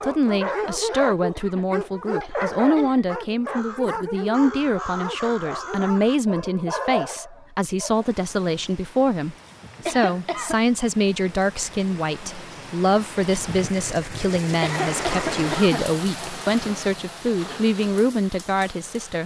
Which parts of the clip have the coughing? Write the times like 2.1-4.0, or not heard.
0.5-3.0, 9.8-10.6, 14.6-16.0.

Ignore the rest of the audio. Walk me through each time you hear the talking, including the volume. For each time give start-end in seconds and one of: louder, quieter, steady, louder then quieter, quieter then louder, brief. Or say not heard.
0.0-19.2 steady.